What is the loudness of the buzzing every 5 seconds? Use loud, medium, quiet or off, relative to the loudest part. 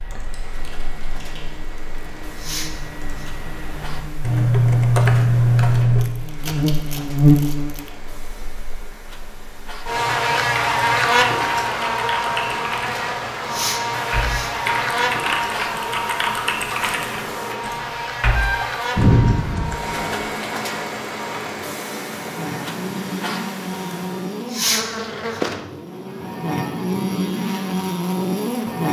quiet, loud, loud, medium, medium, loud.